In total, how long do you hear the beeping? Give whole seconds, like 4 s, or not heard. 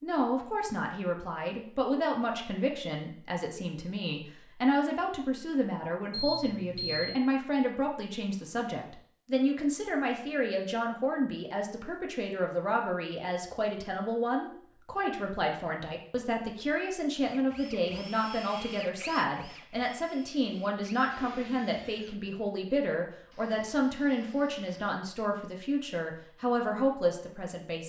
3 s.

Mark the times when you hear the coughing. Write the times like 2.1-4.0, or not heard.
not heard.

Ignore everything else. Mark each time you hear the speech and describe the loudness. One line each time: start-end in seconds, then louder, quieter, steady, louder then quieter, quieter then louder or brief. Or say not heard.
0.0-27.8 steady.